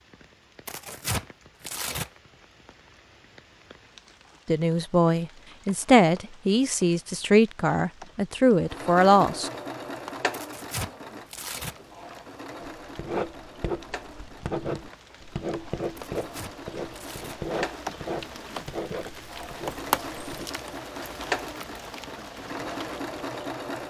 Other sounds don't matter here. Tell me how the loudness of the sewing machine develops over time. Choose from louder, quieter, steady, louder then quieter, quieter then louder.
quieter then louder.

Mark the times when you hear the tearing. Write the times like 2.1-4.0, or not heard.
0.7-2.1, 10.3-11.8, 15.9-17.4.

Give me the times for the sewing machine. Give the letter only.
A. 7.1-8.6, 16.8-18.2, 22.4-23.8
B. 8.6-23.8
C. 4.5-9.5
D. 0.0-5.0
B.